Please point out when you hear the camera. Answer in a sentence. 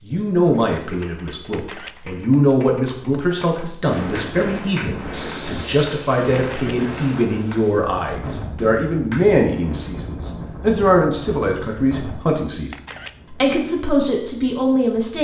You can hear the camera from 1.5 to 1.9 s, from 6.3 to 6.8 s and from 12.7 to 13.2 s.